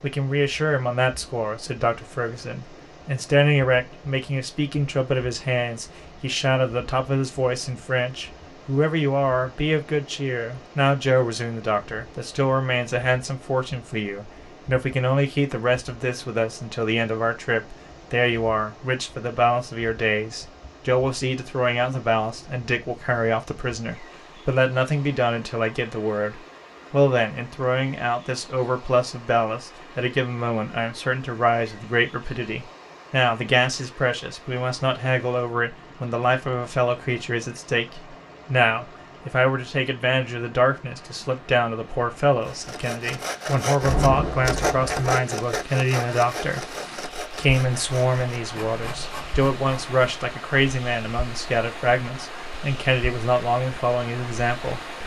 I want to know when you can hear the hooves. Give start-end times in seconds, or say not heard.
not heard.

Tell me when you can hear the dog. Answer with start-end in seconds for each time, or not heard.
not heard.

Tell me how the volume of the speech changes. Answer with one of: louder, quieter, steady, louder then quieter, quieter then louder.
steady.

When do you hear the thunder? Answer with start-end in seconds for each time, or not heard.
43.8-45.0.